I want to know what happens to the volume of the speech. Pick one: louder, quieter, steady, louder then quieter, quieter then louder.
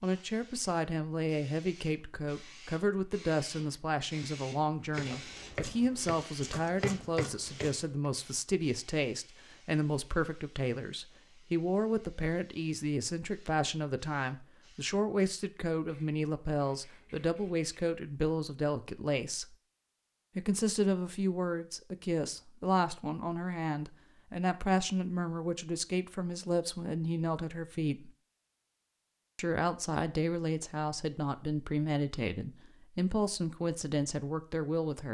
steady.